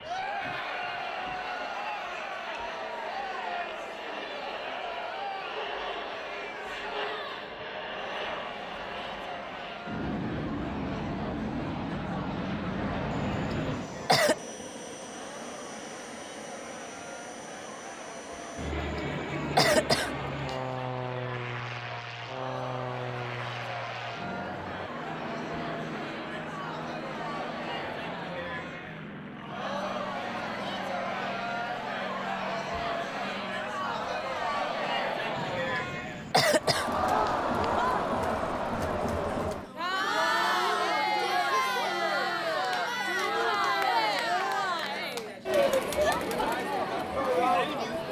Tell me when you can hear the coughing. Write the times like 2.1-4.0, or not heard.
13.1-14.3, 18.6-20.7, 35.4-37.9.